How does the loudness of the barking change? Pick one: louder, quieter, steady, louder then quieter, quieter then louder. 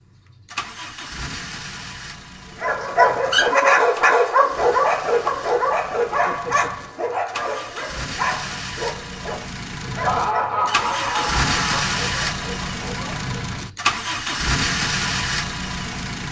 quieter.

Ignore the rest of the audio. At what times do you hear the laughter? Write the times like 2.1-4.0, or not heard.
10.1-11.9.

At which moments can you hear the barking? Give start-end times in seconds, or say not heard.
2.5-13.4.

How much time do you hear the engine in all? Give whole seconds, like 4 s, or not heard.
16 s.